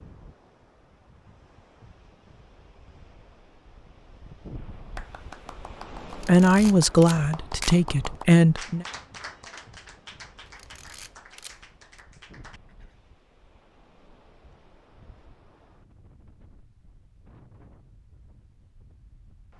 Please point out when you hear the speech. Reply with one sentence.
The speech can be heard from 6.2 to 8.8 s.